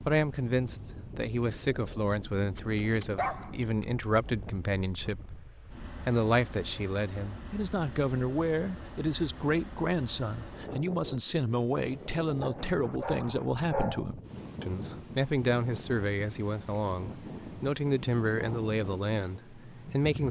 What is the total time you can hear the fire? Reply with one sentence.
You can't hear the fire here.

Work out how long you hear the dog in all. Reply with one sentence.
The dog can be heard for 3 seconds in total.